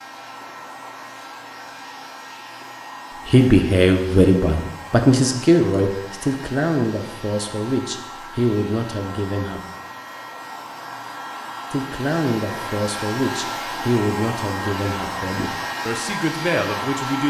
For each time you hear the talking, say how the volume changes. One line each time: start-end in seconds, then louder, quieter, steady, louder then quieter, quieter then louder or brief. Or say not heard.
3.2-9.6 quieter
11.7-17.2 quieter then louder.